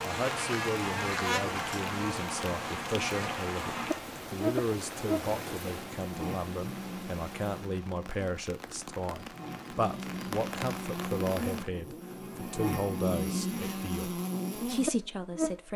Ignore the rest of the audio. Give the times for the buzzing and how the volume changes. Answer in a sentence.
You can hear the buzzing from 0.0 to 15.6 s, getting quieter then louder.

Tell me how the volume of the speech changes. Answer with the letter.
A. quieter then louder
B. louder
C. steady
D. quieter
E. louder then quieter
C.